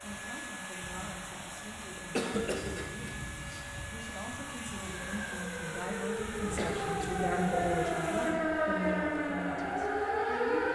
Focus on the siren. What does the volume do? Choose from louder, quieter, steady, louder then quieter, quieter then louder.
louder.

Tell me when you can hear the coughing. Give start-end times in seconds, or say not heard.
2.1-3.6, 6.3-7.0.